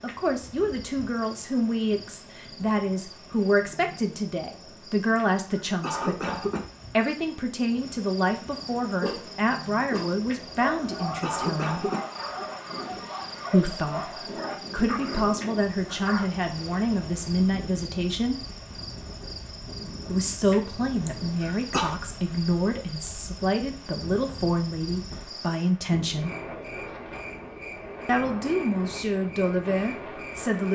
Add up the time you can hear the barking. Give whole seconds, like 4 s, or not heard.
7 s.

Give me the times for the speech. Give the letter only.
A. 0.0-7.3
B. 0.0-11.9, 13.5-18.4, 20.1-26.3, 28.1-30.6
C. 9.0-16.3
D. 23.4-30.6
B.